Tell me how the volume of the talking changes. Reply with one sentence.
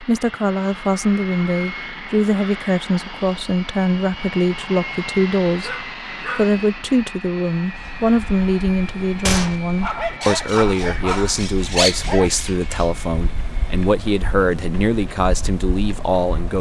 The volume of the talking stays about the same.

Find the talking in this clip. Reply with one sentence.
The talking can be heard from 0.0 to 16.5 s.